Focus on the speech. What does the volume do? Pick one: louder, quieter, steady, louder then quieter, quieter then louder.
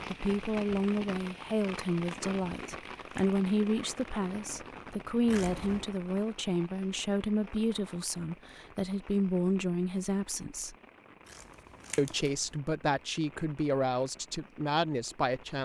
steady.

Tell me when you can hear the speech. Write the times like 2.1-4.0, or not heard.
0.1-10.8, 11.9-15.6.